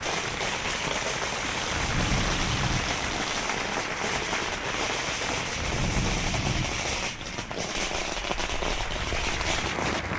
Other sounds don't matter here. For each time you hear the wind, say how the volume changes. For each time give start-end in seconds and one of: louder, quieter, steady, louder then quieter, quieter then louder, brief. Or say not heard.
0.0-10.1 quieter.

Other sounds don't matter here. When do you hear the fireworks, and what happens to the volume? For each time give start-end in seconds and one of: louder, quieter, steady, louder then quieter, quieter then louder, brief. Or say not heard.
0.0-10.0 steady.